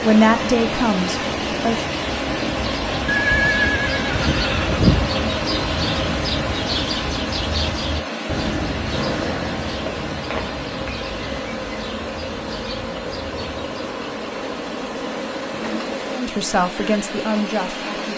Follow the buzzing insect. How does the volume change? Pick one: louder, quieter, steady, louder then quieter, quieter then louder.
steady.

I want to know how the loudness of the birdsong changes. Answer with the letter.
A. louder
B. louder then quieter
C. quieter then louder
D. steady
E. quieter
B.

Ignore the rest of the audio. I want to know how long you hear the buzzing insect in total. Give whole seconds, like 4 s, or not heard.
7 s.